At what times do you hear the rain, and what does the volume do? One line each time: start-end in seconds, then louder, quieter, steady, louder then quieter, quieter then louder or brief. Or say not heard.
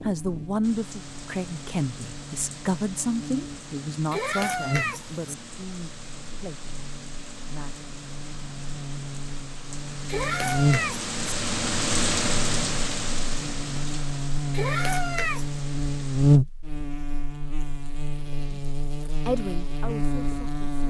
0.0-16.4 louder then quieter.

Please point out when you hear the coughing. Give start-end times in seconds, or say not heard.
not heard.